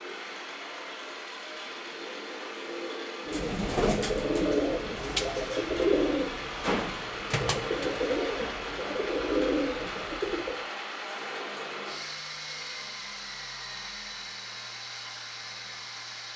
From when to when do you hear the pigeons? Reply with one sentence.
The pigeons can be heard from 3.2 to 10.7 s.